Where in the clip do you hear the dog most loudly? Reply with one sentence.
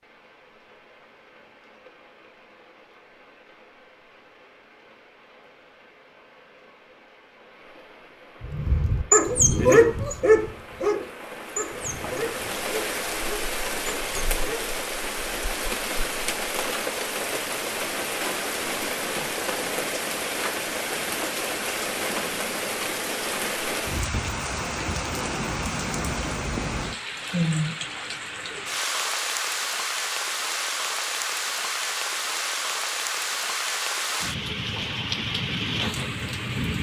The loudest moment of the dog is at 10 seconds.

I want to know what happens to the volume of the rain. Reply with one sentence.
The volume of the rain goes up.